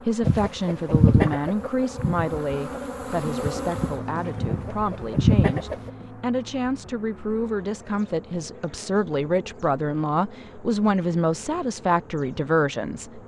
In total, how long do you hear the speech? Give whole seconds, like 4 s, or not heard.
13 s.